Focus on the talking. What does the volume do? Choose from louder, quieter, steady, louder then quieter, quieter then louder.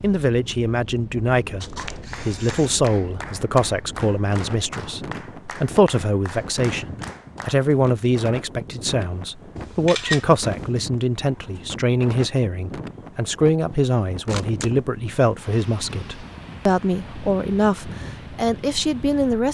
steady.